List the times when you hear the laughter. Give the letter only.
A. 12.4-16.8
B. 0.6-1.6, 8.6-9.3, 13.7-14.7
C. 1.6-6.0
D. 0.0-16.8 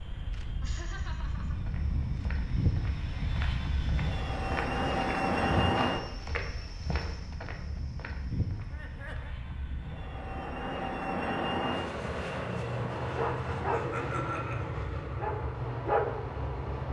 B.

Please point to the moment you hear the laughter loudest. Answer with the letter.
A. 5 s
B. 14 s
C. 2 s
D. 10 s
B.